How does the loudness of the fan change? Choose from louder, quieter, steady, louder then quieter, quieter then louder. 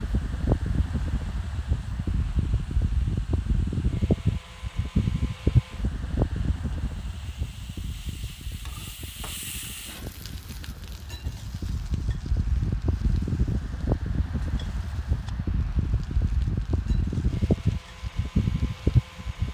quieter then louder.